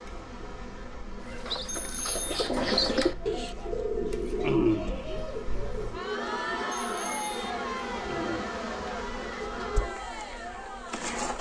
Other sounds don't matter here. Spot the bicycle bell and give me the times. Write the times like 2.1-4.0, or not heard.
1.6-2.5, 6.8-7.5.